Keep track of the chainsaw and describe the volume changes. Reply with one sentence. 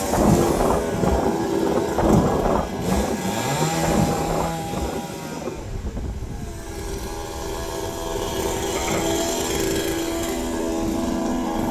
The loudness of the chainsaw goes down, then up.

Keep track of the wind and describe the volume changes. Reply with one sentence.
The loudness of the wind goes down.